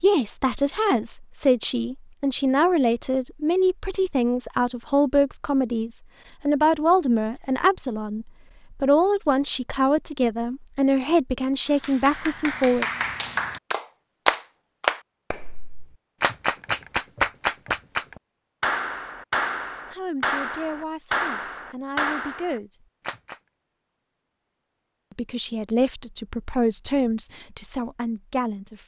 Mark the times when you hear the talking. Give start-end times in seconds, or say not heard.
0.0-12.8, 19.9-22.9, 25.1-28.8.